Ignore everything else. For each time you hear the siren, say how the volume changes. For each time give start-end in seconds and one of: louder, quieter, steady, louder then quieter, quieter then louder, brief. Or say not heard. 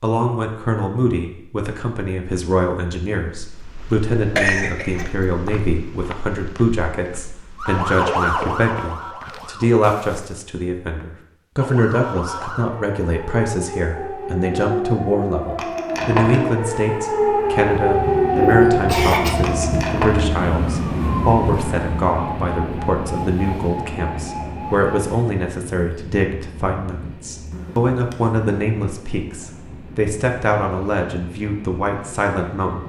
7.5-9.8 brief
11.6-24.9 louder then quieter.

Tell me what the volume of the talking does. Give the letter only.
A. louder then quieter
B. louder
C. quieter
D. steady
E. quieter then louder
D.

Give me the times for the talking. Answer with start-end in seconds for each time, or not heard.
0.0-32.8.